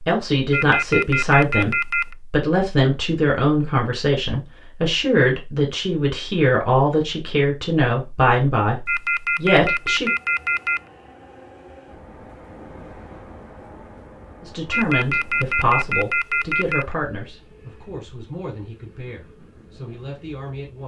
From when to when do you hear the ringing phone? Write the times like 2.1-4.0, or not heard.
0.5-2.1, 8.8-10.8, 14.7-16.9.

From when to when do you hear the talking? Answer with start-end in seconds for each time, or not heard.
0.1-10.1, 14.4-20.8.